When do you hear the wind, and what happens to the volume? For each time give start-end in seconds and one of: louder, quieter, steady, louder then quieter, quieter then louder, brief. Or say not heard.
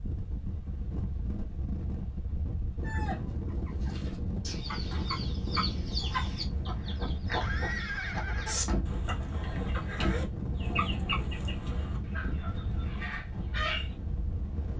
0.0-14.7 steady.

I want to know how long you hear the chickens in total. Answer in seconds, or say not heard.
11 s.